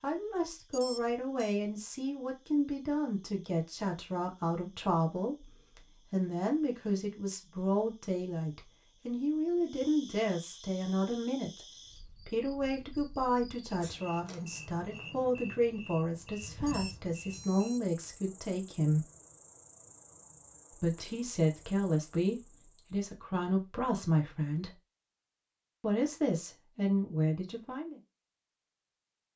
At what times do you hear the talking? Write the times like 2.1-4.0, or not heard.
0.0-19.1, 20.7-24.8, 25.8-28.0.